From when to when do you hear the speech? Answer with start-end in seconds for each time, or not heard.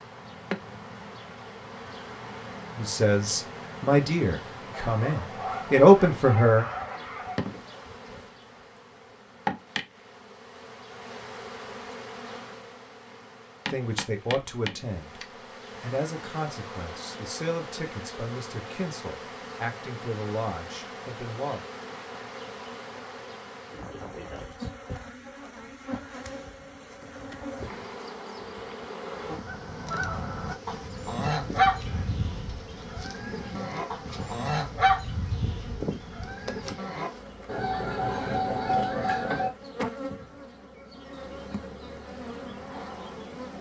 2.8-6.7, 13.7-21.6.